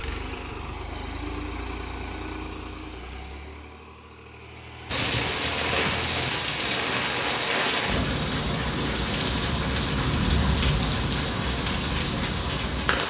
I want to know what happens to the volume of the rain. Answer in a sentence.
The volume of the rain stays about the same.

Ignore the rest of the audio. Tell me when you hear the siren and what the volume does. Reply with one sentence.
You can't hear the siren here.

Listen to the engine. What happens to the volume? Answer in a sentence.
The loudness of the engine goes down, then up.